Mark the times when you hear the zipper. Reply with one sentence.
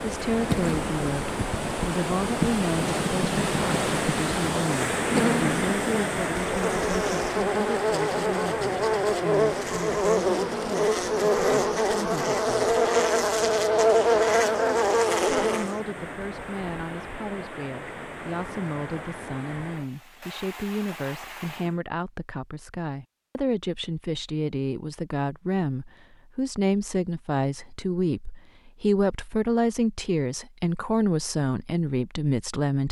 The zipper can't be heard in this clip.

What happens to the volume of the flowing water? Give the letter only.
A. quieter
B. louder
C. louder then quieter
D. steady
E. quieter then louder
A.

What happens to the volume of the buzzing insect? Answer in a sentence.
The loudness of the buzzing insect goes up.